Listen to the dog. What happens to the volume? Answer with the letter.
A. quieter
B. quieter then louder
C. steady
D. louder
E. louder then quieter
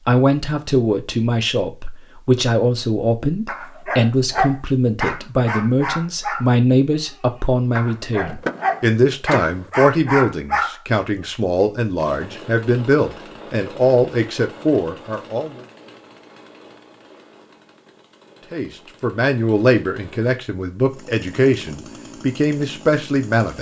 B.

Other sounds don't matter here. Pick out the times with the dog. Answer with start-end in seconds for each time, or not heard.
3.5-10.8.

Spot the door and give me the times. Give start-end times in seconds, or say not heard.
8.2-9.7.